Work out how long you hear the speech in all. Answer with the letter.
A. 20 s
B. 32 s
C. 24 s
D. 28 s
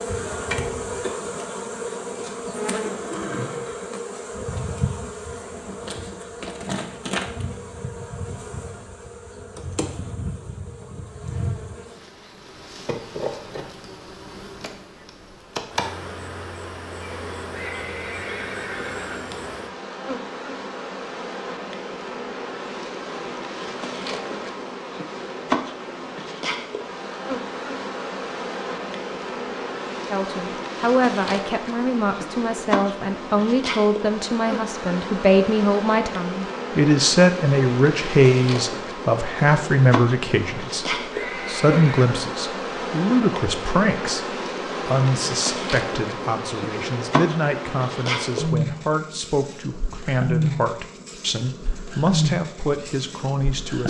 C.